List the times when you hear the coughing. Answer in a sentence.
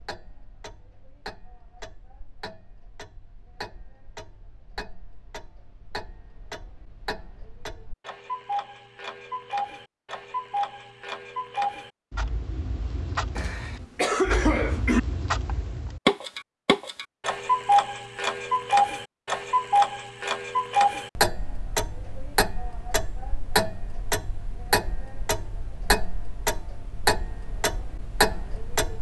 The coughing can be heard from 13.3 to 15.0 s.